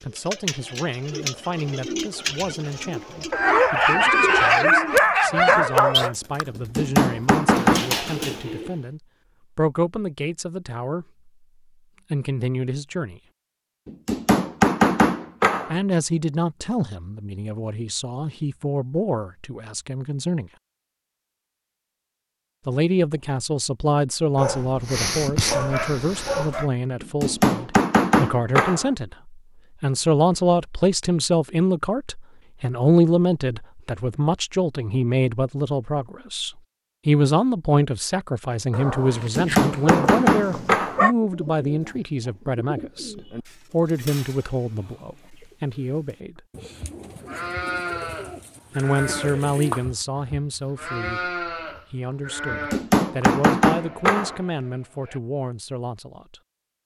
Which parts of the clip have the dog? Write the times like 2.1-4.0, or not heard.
3.3-6.2, 24.4-26.6, 38.7-41.1.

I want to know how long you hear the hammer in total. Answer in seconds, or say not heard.
9 s.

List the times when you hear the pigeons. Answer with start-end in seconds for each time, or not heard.
0.1-8.8, 41.2-49.9.